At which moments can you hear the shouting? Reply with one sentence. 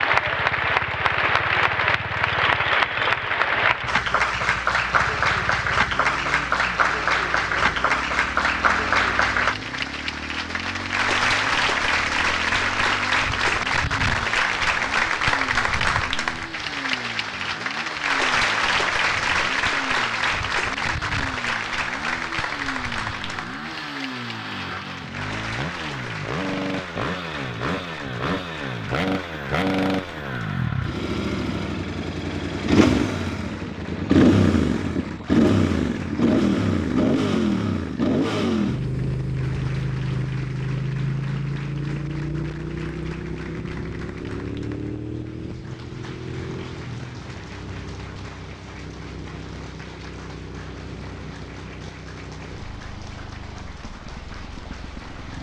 You can't hear the shouting here.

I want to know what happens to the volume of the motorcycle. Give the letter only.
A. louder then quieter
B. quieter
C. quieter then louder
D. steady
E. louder
A.